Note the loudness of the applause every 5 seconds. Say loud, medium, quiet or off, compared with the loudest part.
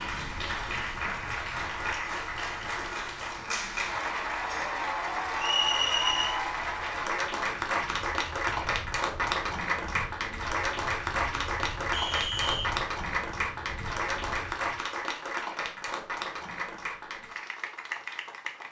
loud, loud, loud, medium.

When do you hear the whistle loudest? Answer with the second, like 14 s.
6 s.